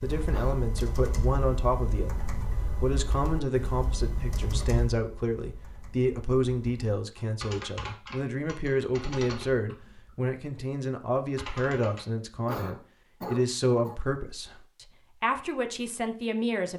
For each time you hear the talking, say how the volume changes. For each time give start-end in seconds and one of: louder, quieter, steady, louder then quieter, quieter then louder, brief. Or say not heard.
0.0-16.7 steady.